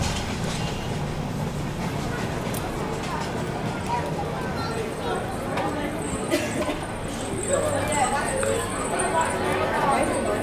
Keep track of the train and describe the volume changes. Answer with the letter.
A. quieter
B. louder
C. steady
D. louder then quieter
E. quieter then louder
A.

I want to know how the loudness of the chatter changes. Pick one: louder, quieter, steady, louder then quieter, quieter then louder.
louder.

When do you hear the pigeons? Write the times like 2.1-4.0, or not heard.
not heard.